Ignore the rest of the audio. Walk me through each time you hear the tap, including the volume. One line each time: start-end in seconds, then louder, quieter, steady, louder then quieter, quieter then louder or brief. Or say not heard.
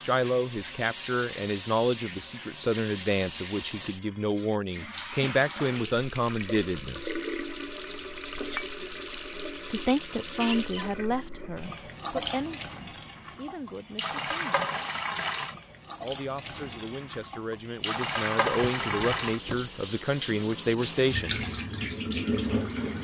0.0-22.9 louder.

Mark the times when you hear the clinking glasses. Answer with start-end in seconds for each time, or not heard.
8.2-8.8.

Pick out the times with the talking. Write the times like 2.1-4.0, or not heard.
0.0-7.2, 9.7-14.7, 16.0-21.4.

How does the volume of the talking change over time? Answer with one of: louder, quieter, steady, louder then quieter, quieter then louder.
quieter then louder.